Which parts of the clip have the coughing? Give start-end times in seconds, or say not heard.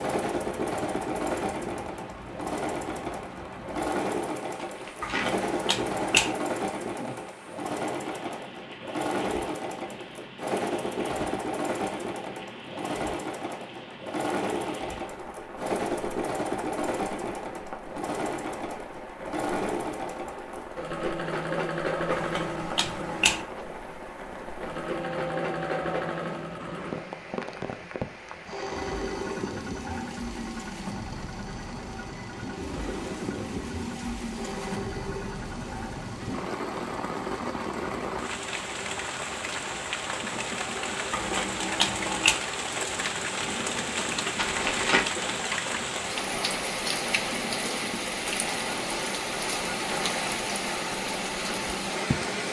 not heard.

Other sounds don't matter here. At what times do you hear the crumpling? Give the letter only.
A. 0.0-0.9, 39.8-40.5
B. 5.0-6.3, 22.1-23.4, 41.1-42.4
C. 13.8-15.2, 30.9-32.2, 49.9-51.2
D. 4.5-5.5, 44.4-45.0
D.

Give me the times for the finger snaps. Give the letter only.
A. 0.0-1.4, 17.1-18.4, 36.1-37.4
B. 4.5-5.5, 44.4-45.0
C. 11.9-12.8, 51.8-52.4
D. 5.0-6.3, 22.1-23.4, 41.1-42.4
D.